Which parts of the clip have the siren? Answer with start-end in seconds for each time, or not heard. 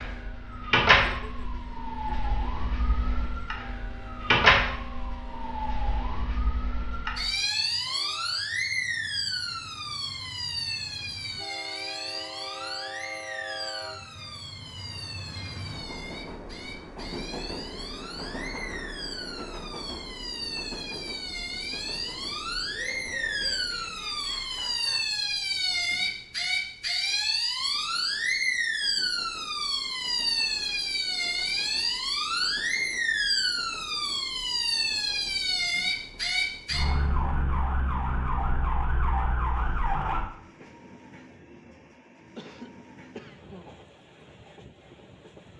0.0-40.2.